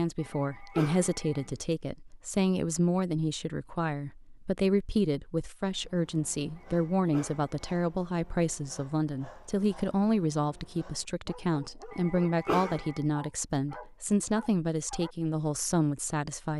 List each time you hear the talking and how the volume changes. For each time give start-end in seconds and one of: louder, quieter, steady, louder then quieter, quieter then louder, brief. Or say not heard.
0.0-16.5 steady.